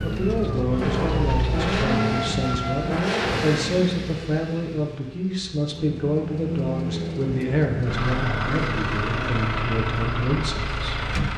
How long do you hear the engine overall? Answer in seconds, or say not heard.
11 s.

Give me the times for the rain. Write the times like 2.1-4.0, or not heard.
not heard.